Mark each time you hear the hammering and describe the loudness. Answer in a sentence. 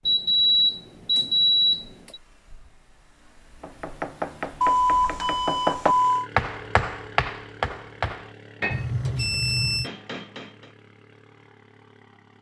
The hammering can be heard from 3.6 to 10.7 s, getting louder then quieter.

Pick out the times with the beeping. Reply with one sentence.
The beeping can be heard from 0.1 to 2.2 s, from 4.6 to 6.3 s and from 8.7 to 9.9 s.